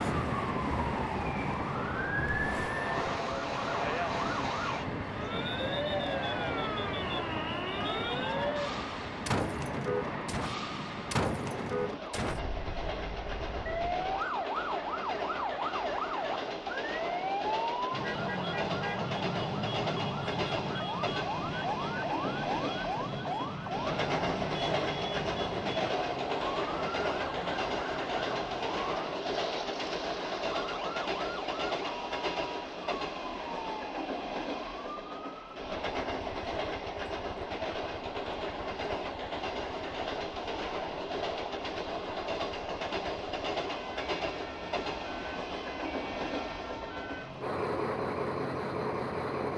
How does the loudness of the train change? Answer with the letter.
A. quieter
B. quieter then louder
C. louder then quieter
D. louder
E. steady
E.